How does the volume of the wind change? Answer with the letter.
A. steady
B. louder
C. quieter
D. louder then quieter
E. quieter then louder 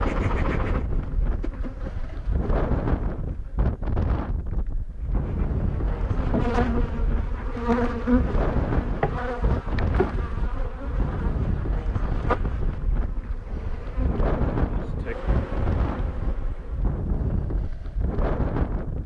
A.